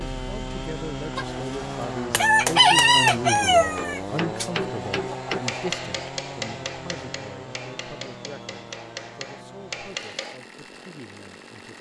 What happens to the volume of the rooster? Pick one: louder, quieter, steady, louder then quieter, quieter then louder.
louder then quieter.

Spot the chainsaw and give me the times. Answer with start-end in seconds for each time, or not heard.
0.0-11.7.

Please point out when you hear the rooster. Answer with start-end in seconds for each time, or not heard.
1.1-5.7.